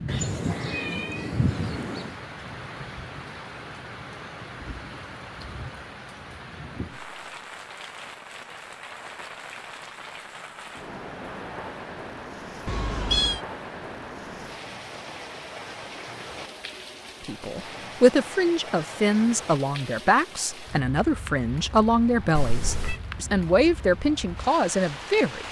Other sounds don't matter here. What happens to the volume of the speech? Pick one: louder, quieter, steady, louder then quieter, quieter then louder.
steady.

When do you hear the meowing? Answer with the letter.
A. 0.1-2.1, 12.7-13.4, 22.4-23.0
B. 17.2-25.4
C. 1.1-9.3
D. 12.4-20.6
A.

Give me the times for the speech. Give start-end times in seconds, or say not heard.
17.2-25.4.